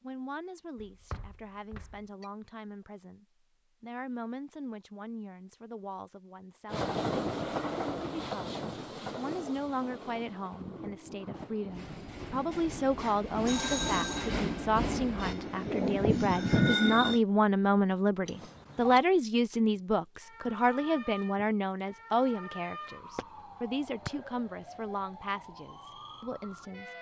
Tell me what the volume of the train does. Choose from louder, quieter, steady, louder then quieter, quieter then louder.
quieter then louder.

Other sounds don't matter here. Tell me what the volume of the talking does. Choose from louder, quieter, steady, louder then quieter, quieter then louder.
louder then quieter.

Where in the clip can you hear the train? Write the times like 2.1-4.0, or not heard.
6.7-17.2.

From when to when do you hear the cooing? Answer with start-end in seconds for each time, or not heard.
not heard.